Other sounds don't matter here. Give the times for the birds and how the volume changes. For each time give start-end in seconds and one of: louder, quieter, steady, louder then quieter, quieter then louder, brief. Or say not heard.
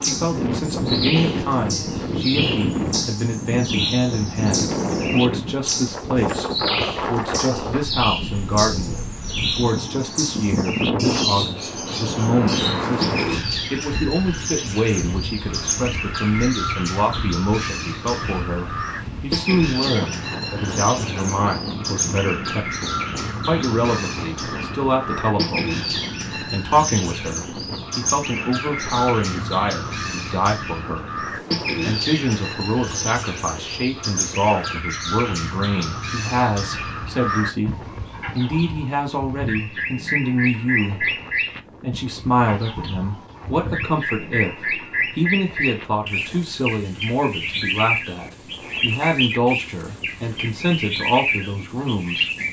0.0-52.4 steady.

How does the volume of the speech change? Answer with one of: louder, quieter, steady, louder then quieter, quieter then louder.
steady.